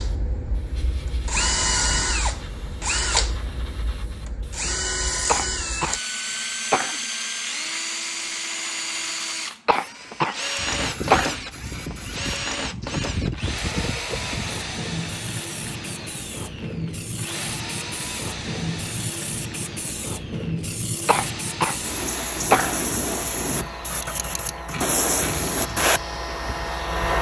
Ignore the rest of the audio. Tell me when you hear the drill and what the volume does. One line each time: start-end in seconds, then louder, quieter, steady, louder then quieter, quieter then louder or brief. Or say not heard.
0.0-27.1 quieter.